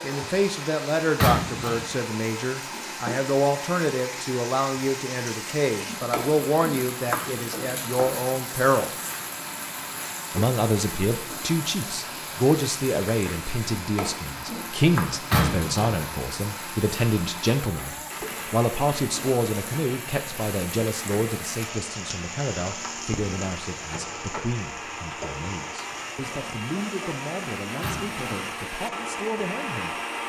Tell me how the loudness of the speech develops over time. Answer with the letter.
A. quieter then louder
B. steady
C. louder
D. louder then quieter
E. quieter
E.